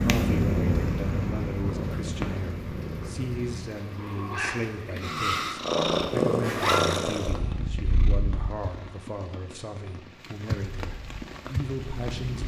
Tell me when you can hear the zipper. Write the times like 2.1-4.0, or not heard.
6.4-7.0.